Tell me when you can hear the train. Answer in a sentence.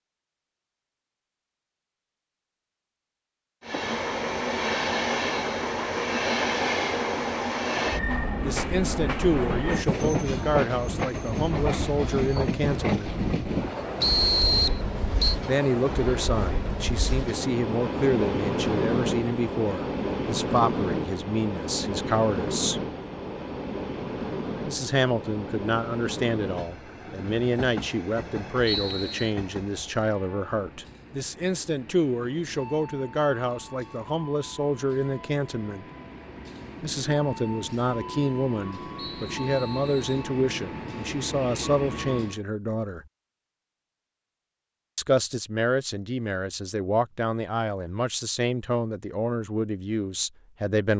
You can hear the train from 3.6 to 42.4 s.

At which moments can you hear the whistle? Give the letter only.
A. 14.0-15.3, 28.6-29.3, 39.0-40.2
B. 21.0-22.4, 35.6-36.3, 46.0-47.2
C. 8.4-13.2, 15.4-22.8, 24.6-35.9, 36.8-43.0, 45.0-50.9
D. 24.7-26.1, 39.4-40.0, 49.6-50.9
A.